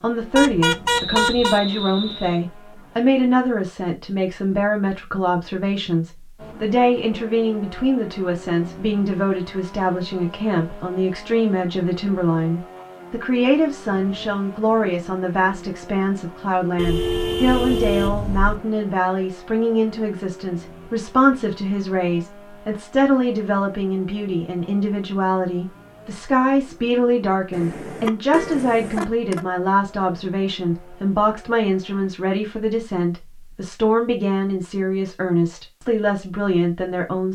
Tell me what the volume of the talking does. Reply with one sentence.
The loudness of the talking stays about the same.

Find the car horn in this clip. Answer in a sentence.
The car horn can be heard from 0.3 to 1.6 s, from 16.8 to 18.6 s and from 27.5 to 29.4 s.